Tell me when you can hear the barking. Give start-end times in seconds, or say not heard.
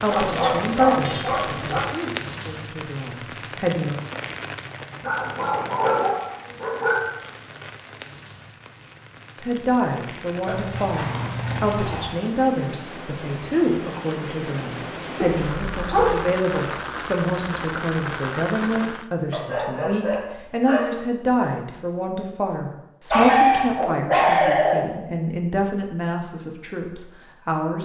0.1-1.8, 5.0-7.0, 10.4-12.2, 15.2-16.2, 19.3-20.9, 23.1-24.9.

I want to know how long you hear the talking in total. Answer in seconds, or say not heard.
22 s.